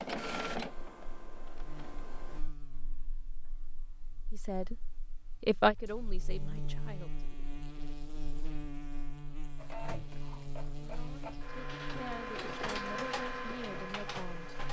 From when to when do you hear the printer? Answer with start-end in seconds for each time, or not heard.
0.0-2.4, 9.6-14.6.